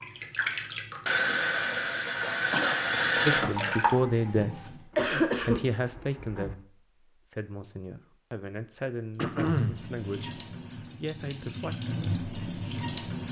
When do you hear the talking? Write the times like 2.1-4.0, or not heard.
3.2-11.8.